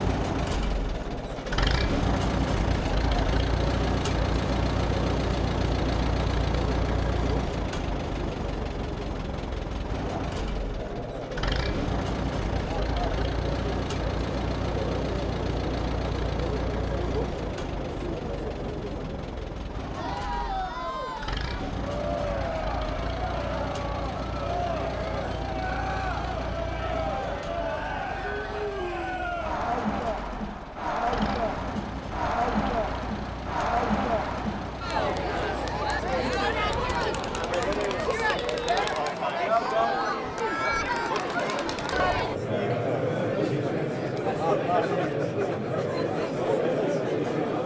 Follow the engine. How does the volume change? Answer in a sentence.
The volume of the engine goes down.